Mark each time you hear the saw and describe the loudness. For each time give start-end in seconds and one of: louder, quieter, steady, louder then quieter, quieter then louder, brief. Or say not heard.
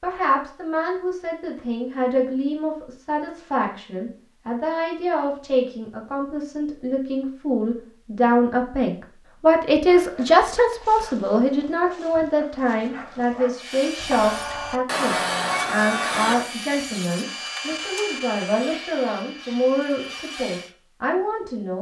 13.6-20.7 quieter.